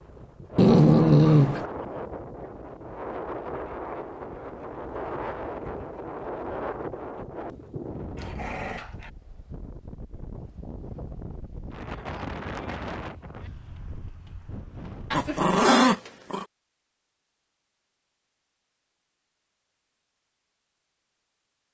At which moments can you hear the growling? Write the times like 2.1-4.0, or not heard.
0.6-1.6, 8.2-9.1, 15.1-16.4.